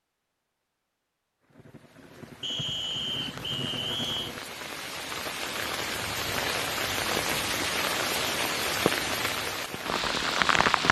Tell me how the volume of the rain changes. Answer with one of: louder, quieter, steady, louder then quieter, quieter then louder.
louder.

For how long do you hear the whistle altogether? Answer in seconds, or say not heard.
2 s.